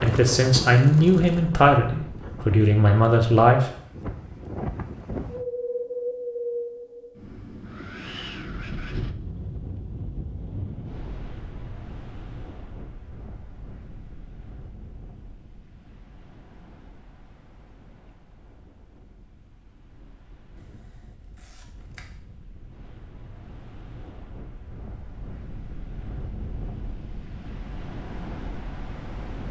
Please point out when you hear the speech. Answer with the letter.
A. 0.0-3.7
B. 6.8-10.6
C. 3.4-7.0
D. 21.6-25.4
A.